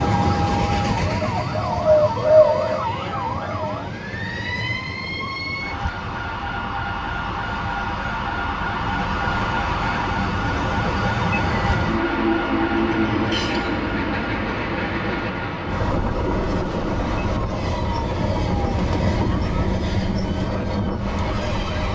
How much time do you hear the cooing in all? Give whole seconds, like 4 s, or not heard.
2 s.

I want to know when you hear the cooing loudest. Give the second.
2 s.